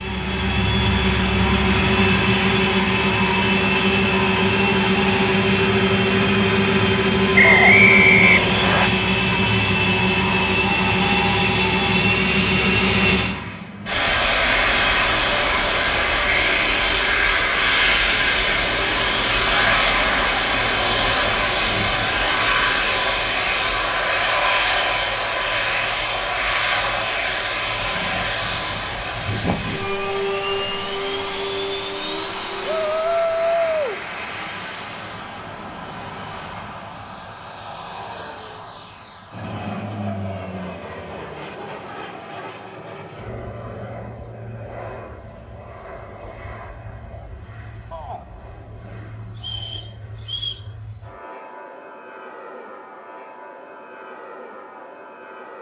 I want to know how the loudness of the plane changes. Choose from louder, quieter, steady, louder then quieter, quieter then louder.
quieter.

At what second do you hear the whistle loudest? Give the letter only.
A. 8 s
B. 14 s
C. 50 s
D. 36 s
A.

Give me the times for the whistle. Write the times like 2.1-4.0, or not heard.
7.3-8.9, 49.4-50.6.